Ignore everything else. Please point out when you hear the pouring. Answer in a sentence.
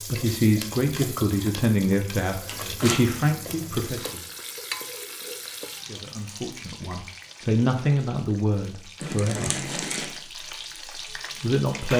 The pouring can't be heard in this clip.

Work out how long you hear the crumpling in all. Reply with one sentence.
The crumpling can be heard for 3 seconds in total.